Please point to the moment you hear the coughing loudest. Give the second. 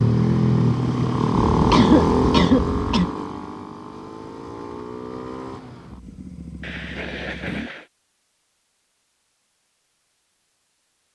2 s.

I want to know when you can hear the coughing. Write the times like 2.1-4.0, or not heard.
1.5-3.1, 6.6-7.8.